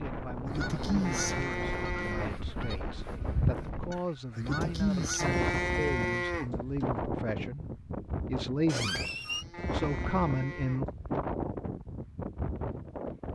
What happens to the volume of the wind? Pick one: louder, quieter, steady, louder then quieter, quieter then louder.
steady.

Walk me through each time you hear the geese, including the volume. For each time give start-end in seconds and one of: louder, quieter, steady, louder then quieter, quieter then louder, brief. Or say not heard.
0.5-5.4 quieter then louder.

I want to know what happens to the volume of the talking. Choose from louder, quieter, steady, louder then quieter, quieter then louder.
louder.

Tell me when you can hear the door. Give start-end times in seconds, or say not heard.
8.7-9.4.